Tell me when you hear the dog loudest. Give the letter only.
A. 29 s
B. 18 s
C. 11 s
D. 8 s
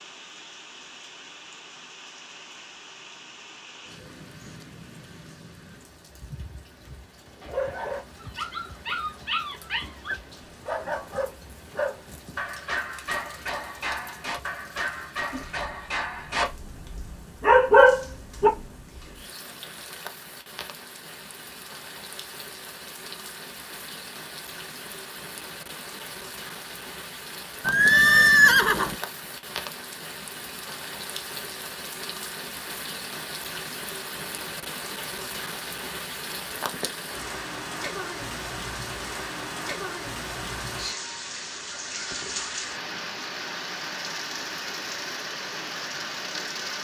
B.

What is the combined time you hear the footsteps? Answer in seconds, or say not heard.
not heard.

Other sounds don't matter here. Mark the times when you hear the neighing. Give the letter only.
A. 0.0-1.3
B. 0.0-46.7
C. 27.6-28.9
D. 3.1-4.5
C.